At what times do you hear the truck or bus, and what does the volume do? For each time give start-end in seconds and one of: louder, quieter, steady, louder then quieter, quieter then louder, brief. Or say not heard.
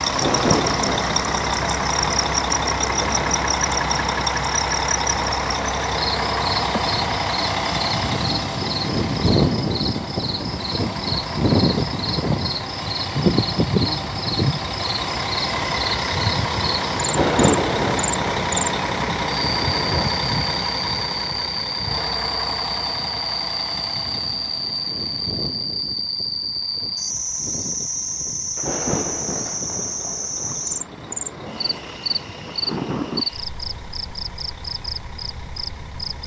0.0-36.2 quieter.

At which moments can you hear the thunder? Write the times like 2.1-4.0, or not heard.
0.1-4.2, 17.1-20.1, 28.6-33.3.